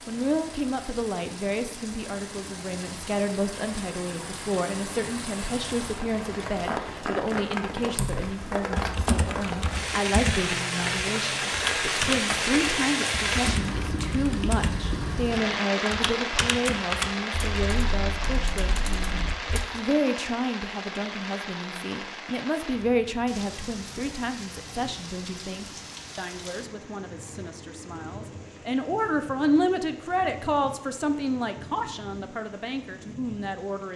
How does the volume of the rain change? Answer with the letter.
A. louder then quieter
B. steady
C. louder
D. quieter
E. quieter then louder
A.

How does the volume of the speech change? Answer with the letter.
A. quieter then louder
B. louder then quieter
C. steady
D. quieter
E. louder
C.